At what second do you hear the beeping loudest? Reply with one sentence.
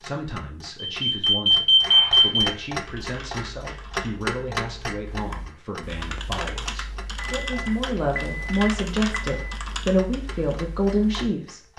The loudest moment of the beeping is at 2 seconds.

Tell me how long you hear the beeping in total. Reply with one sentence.
The beeping can be heard for 4 seconds in total.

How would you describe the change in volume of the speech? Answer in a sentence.
The volume of the speech goes up.